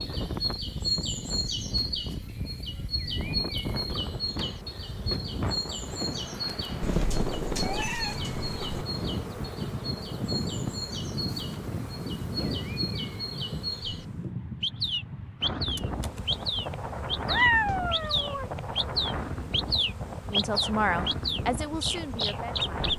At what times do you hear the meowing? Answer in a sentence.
You can hear the meowing from 6.8 to 8.8 s and from 17.2 to 18.5 s.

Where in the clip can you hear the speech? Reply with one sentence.
The speech can be heard from 20.3 to 22.7 s.